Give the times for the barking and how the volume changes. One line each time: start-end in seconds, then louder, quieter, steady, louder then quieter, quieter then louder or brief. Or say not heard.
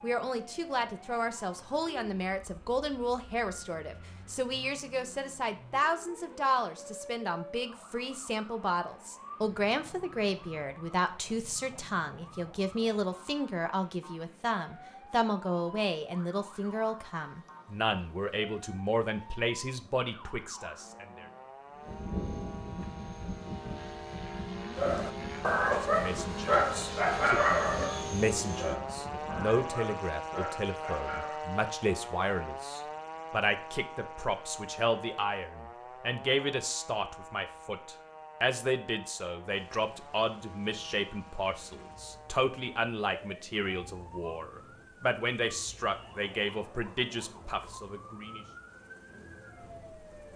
24.8-31.4 quieter.